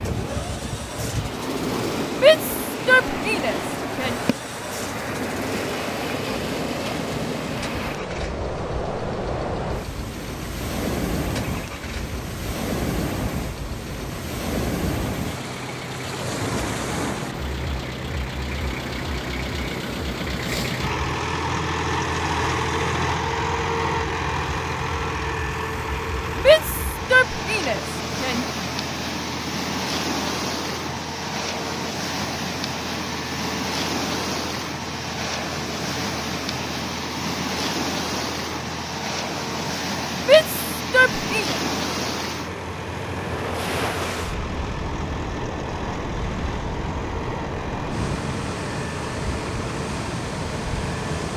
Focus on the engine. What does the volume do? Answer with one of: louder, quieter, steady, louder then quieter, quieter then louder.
louder then quieter.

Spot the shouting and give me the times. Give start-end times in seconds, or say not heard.
2.2-4.2, 26.4-28.4, 40.2-41.5.